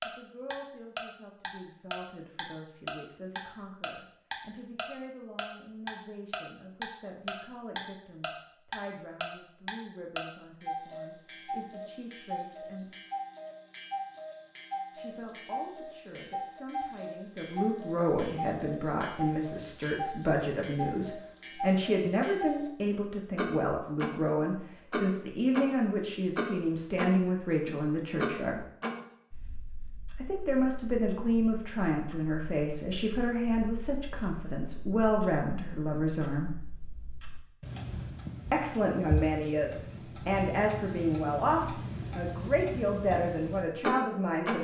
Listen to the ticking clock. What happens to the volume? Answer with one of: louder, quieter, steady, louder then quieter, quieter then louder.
quieter then louder.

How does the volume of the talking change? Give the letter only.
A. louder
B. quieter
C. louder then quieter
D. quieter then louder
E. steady
A.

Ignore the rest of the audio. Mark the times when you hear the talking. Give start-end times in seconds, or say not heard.
0.1-12.9, 14.9-28.6, 30.2-36.5, 38.5-44.5.